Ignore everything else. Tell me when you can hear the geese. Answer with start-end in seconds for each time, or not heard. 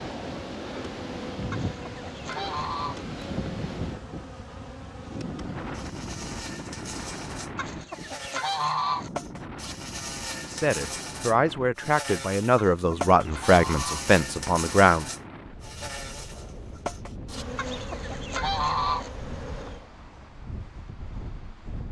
1.5-3.0, 7.5-9.1, 12.6-14.1, 17.6-19.1.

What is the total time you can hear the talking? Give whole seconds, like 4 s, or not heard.
5 s.